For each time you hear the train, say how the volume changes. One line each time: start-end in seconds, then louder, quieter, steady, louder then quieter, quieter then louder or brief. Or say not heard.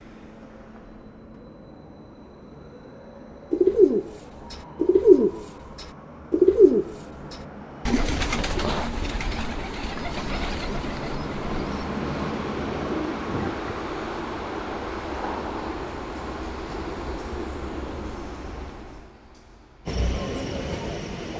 0.0-21.3 louder.